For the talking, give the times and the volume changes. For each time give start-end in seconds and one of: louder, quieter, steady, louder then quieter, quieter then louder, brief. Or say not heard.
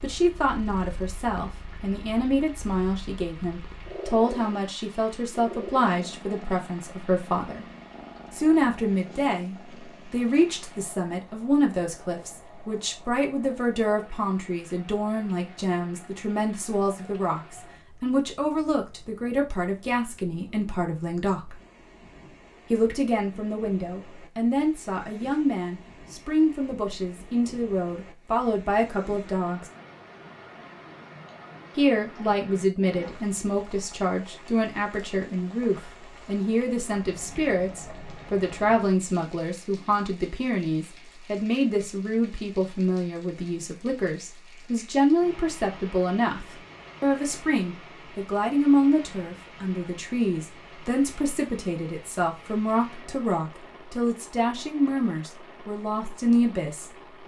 0.0-7.7 steady
8.3-21.6 steady
22.7-29.6 steady
31.8-57.2 steady.